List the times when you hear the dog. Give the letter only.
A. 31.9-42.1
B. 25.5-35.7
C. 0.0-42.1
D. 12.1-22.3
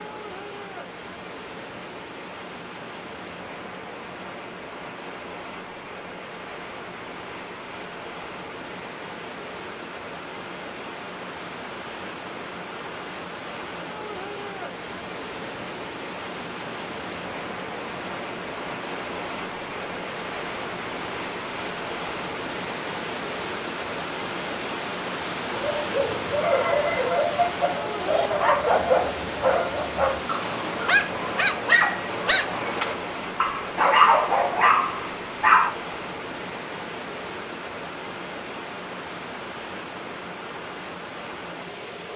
B.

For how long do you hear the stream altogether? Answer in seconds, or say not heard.
42 s.